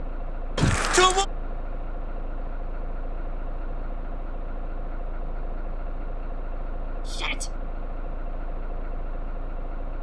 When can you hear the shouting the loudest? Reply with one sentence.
The volume of the shouting peaks at 1 second.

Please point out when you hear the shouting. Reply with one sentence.
The shouting can be heard from 0.6 to 1.2 s and from 7.0 to 7.5 s.